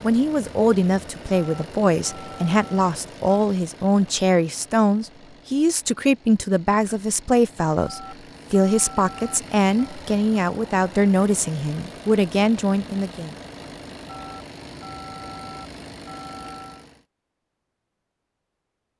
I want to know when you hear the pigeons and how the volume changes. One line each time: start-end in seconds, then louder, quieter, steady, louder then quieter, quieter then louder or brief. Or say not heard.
not heard.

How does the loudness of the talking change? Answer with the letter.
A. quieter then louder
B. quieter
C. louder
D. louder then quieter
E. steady
E.